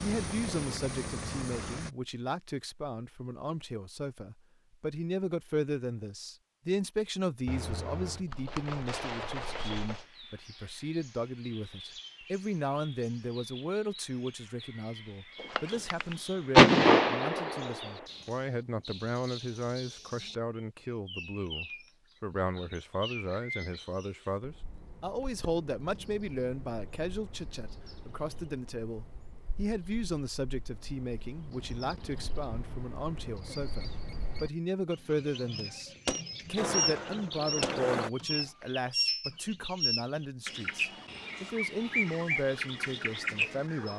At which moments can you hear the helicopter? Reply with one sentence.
You can hear the helicopter from 0.0 to 1.9 s and from 36.5 to 38.1 s.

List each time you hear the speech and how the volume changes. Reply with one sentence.
You can hear the speech from 0.0 to 43.9 s, at a steady volume.